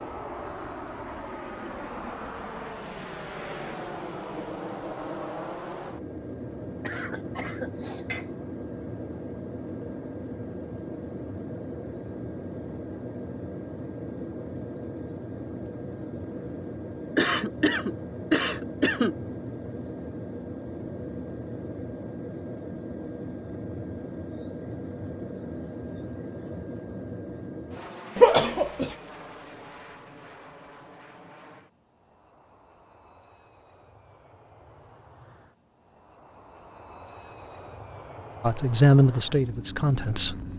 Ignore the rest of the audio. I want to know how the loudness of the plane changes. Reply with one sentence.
The volume of the plane goes down.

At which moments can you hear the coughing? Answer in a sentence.
You can hear the coughing from 6.8 to 8.2 s, from 17.1 to 19.1 s and from 28.1 to 28.9 s.